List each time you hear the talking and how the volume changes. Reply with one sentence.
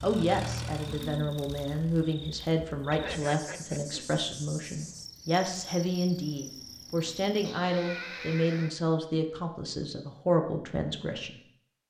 The talking can be heard from 0.0 to 11.4 s, at a steady volume.